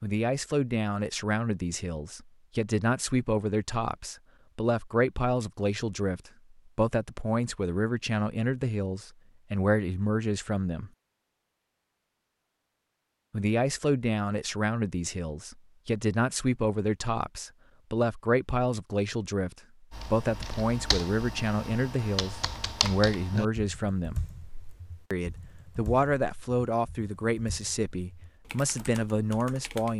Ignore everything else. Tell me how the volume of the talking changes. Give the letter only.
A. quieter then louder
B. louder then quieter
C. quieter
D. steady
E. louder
D.